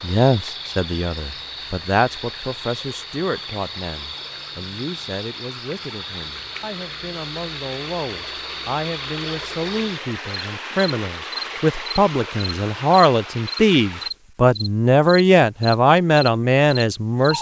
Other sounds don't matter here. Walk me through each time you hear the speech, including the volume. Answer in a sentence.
You can hear the speech from 0.0 to 17.3 s, getting quieter then louder.